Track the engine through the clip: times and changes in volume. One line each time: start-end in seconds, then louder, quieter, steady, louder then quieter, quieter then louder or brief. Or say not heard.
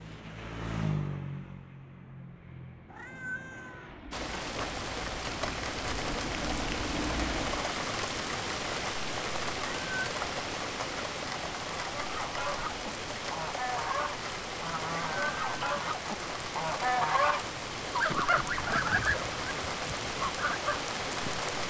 0.0-7.7 quieter then louder.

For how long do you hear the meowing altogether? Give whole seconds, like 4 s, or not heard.
3 s.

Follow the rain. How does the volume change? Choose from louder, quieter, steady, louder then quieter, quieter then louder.
steady.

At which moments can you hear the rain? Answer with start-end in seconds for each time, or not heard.
4.1-21.6.